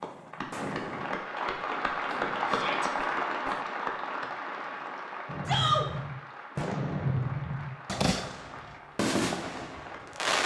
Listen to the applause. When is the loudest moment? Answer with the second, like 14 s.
3 s.